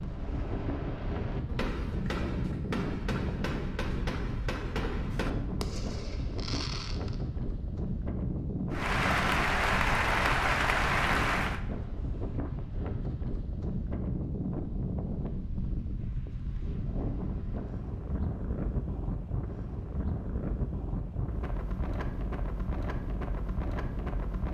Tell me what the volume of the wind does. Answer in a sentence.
The volume of the wind stays about the same.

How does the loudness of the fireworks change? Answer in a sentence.
The volume of the fireworks stays about the same.